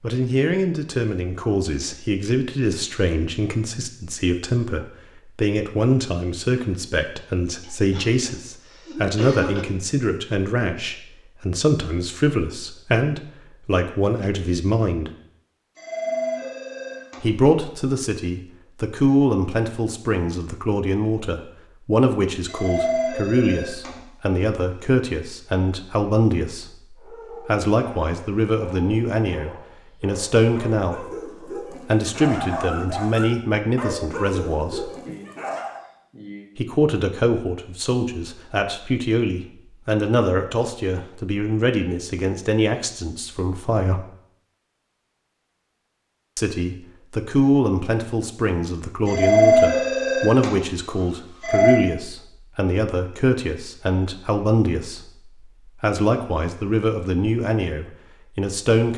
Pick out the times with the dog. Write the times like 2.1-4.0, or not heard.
26.9-35.8.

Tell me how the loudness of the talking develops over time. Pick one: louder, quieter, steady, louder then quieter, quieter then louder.
steady.